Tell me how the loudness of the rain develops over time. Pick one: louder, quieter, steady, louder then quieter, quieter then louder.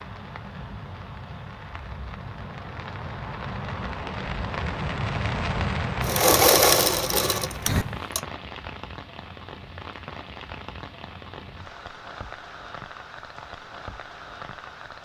louder then quieter.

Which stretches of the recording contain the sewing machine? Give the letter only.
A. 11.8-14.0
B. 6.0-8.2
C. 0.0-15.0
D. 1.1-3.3
B.